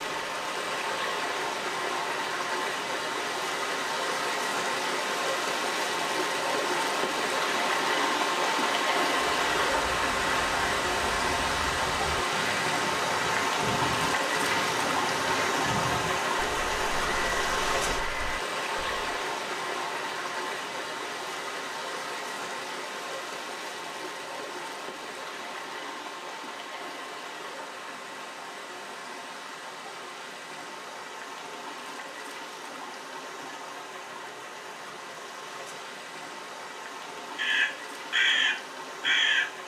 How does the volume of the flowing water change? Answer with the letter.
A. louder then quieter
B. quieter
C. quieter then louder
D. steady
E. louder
B.